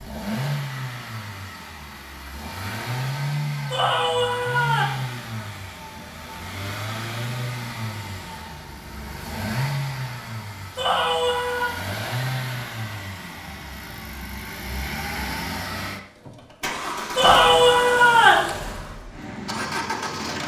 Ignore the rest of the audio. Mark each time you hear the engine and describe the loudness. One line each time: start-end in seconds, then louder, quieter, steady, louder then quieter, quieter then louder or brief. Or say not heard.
0.0-20.4 steady.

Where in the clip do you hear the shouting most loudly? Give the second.
18 s.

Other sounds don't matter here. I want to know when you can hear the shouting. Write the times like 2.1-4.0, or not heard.
3.7-4.8, 10.8-11.8, 17.1-18.5.